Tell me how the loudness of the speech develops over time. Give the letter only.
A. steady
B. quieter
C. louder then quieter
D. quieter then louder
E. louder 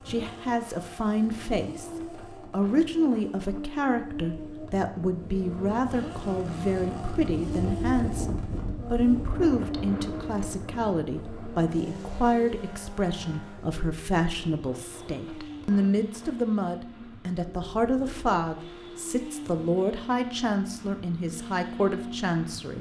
A.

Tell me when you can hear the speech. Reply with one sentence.
The speech can be heard from 0.1 to 22.7 s.